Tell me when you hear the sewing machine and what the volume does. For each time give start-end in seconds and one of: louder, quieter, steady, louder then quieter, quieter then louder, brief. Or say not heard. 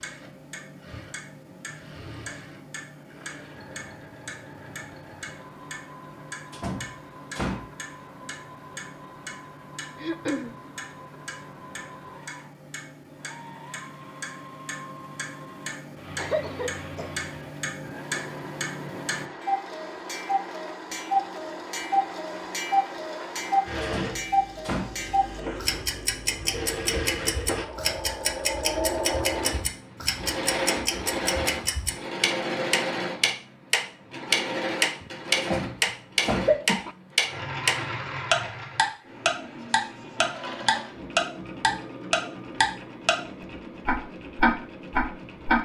0.0-45.6 louder then quieter.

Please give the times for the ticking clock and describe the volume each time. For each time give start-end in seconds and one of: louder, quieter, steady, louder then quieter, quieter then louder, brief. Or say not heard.
0.0-43.1 louder
43.9-45.6 brief.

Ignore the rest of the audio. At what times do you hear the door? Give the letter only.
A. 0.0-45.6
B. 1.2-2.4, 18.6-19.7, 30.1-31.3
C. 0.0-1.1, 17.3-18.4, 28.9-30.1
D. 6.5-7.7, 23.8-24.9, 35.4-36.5
D.